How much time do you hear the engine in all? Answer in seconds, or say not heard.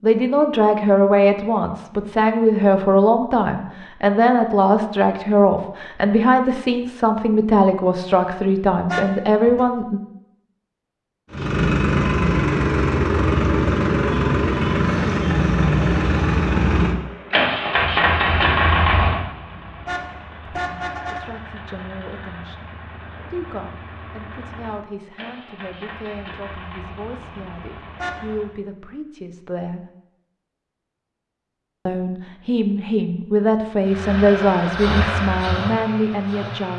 20 s.